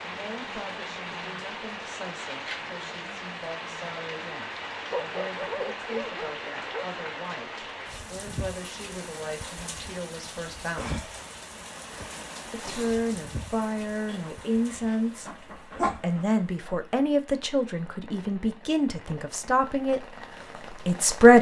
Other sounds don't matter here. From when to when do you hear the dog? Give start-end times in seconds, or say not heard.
4.9-6.8, 14.1-16.8.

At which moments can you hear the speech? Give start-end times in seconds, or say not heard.
0.0-11.0, 12.5-21.3.